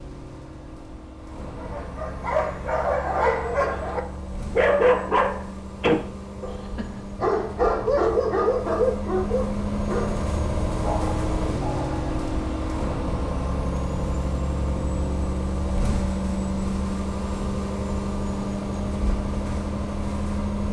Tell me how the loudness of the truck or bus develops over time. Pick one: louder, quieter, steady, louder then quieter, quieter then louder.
louder.